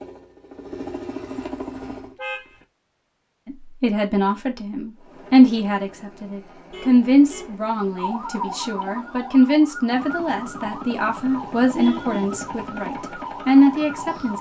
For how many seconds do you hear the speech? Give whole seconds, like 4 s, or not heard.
11 s.